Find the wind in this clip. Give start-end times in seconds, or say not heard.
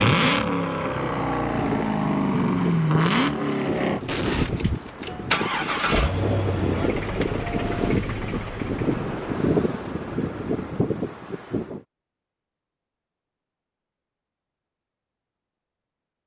0.0-11.8.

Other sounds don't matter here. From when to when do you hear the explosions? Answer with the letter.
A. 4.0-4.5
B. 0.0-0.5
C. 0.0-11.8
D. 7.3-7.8
A.